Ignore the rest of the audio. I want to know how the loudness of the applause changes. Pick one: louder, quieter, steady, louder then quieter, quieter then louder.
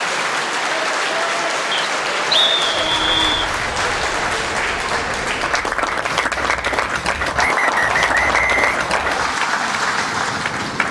steady.